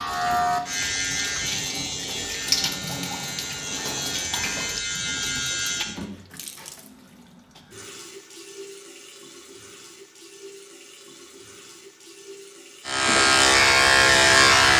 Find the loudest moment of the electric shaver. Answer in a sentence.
The volume of the electric shaver peaks at 14 seconds.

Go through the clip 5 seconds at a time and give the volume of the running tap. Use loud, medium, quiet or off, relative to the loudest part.
loud, medium, quiet.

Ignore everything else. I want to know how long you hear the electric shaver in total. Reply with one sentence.
You can hear the electric shaver for 8 seconds altogether.